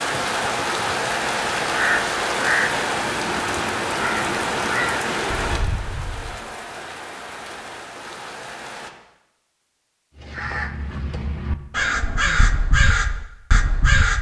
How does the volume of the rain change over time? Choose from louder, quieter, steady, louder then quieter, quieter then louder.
quieter.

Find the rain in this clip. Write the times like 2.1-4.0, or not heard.
0.0-8.9.